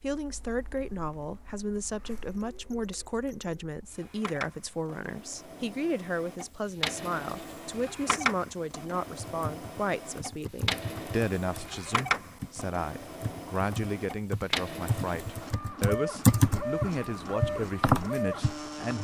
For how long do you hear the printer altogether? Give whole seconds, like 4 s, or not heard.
19 s.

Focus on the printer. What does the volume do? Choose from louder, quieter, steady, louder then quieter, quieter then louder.
louder.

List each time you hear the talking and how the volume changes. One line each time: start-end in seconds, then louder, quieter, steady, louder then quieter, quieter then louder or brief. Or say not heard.
0.0-19.0 steady.